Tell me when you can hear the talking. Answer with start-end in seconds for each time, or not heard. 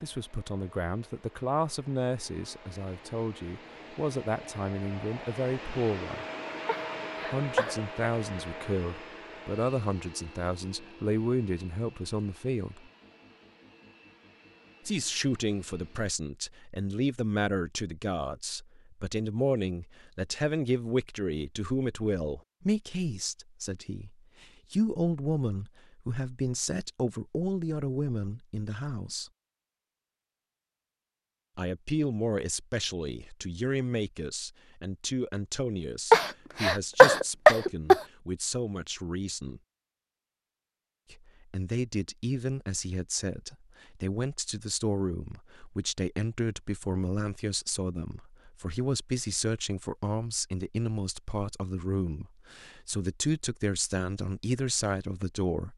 0.0-6.2, 7.3-12.8, 14.8-29.3, 31.6-39.6, 41.1-55.7.